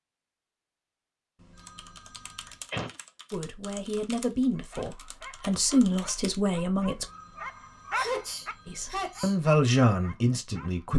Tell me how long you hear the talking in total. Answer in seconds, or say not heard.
6 s.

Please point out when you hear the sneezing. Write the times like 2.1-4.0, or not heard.
2.5-3.0, 8.0-9.3.